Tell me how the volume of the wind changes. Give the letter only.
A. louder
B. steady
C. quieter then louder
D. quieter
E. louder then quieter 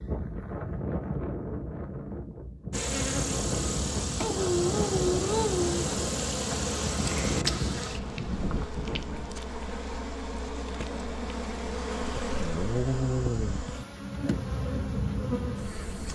B.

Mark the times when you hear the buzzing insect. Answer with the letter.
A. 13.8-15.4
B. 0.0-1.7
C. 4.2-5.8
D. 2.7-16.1
D.